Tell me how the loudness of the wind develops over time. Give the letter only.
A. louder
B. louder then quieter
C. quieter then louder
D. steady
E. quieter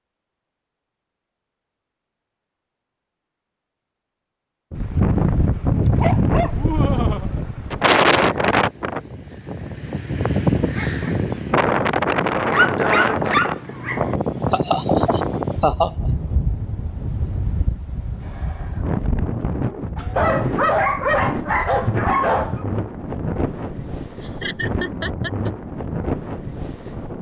E.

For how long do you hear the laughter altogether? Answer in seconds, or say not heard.
4 s.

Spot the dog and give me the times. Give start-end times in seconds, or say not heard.
6.0-7.5, 12.5-14.2, 19.9-22.6.